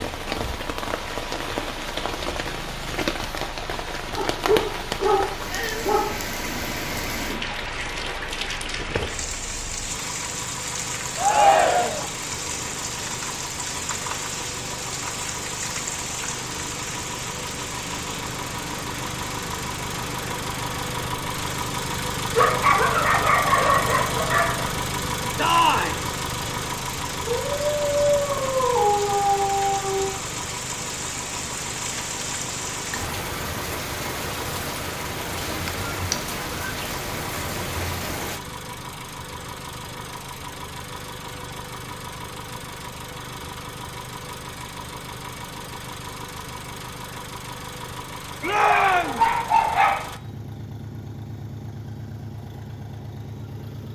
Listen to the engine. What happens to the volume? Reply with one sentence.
The loudness of the engine goes up, then down.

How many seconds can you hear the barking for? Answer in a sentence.
The barking can be heard for 9 seconds in total.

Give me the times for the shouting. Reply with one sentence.
The shouting can be heard from 11.2 to 12.1 s, from 25.4 to 26.0 s and from 48.4 to 49.2 s.